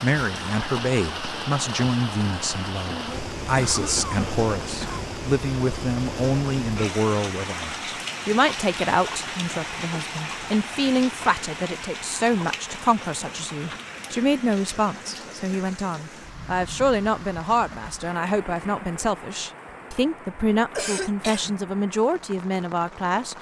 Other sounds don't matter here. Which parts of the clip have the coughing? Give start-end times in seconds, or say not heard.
3.5-5.1, 20.8-21.6.